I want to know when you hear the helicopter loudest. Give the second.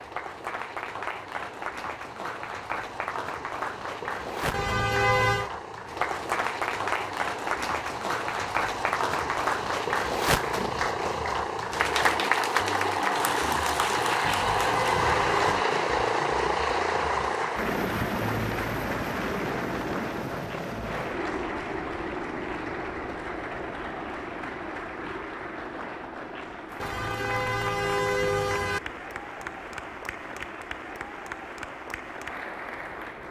15 s.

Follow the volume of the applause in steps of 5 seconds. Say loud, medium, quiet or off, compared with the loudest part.
medium, loud, loud, loud, medium, medium, medium.